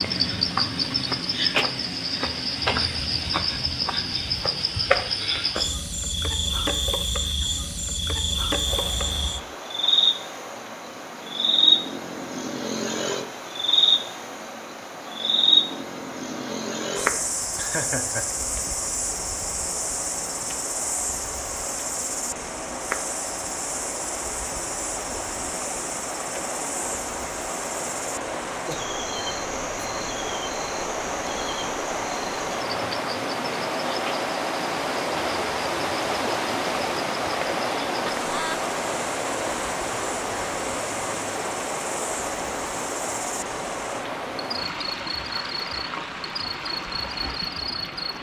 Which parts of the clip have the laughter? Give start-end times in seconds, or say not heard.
17.6-18.3, 38.2-38.6.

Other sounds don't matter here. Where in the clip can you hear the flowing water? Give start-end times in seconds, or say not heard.
8.7-48.1.